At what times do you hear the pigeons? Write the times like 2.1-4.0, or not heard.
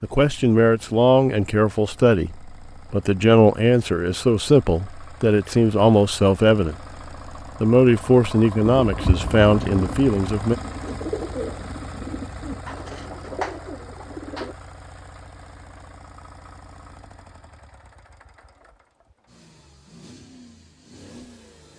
8.8-14.6.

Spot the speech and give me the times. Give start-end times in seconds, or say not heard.
0.0-6.8, 7.6-10.6.